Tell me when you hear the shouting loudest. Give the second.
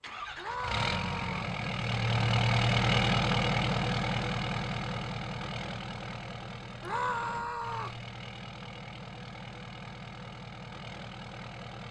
7 s.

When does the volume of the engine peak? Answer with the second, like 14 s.
3 s.